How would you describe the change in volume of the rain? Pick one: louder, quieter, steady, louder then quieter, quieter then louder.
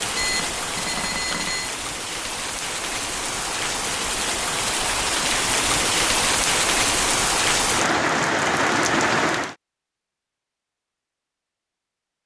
louder.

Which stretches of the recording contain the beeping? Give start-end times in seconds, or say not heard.
0.1-1.8.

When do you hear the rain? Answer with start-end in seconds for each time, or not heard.
0.0-9.6.